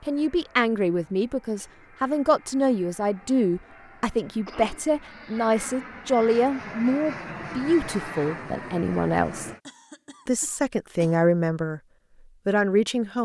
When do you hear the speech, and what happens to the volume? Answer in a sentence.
The speech can be heard from 0.0 to 9.5 s, at a steady volume; briefly from 10.2 to 11.8 s; and briefly from 12.4 to 13.2 s.